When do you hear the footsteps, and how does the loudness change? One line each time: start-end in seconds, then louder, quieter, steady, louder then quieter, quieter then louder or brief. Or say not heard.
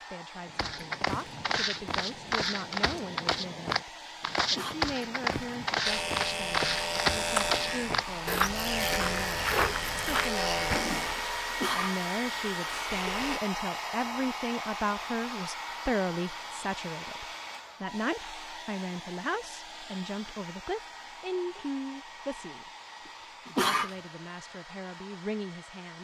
0.5-11.2 steady.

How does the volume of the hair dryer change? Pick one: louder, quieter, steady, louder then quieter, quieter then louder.
louder then quieter.